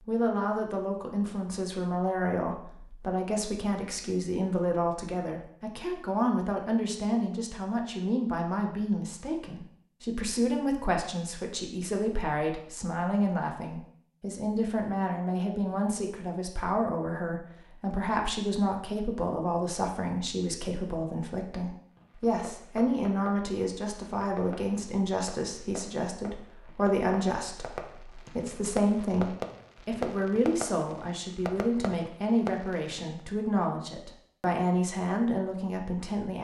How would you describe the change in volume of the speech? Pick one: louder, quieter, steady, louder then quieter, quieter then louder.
steady.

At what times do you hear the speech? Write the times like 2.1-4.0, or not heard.
0.1-36.3.